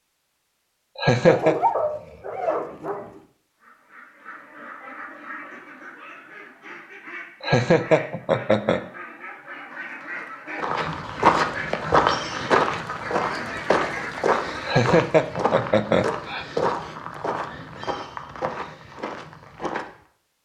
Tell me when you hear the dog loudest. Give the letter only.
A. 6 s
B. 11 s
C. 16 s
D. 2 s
D.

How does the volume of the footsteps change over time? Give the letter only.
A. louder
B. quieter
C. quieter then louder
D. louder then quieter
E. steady
B.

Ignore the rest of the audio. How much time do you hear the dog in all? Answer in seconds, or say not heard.
2 s.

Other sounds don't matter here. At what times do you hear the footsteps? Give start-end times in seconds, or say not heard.
10.6-19.9.